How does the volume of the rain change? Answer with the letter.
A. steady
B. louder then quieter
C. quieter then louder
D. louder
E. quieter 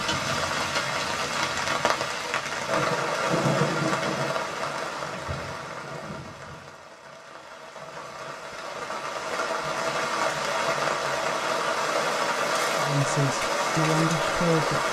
C.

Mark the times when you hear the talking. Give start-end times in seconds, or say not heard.
12.8-14.8.